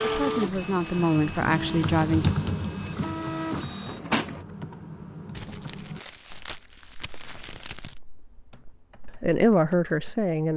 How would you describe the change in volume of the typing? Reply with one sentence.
The loudness of the typing goes down.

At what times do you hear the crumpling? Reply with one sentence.
You can hear the crumpling from 5.3 to 8.0 s.